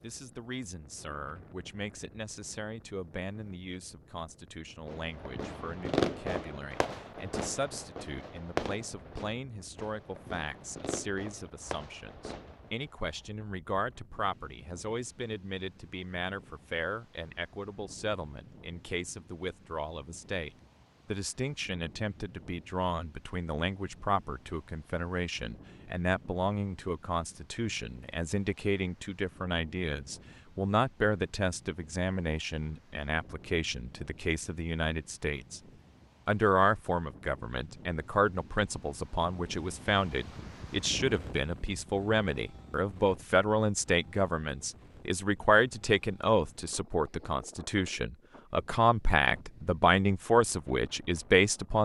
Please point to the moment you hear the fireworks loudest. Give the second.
6 s.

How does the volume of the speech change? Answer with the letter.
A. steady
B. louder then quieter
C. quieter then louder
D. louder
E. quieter
D.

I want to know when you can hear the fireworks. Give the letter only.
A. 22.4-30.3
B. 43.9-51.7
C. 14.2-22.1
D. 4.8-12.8
D.